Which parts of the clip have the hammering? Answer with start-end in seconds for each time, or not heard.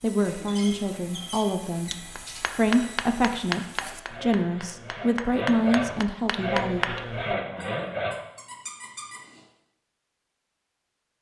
1.9-7.3.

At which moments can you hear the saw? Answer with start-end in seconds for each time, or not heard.
0.0-8.2.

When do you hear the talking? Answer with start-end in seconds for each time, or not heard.
0.0-1.9, 2.5-6.8.